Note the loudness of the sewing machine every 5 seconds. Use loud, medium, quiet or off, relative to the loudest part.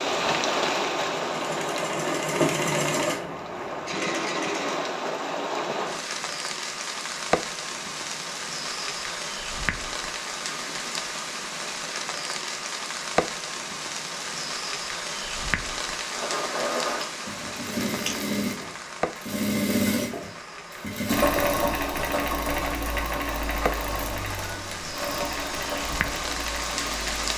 loud, off, off, loud, loud, medium.